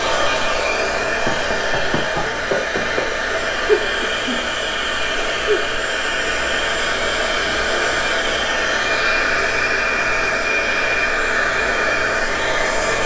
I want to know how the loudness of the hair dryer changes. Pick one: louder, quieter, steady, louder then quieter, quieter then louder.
steady.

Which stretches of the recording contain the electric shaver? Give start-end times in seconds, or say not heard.
not heard.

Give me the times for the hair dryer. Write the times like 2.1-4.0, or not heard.
0.0-13.0.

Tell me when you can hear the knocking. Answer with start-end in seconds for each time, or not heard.
1.0-3.0.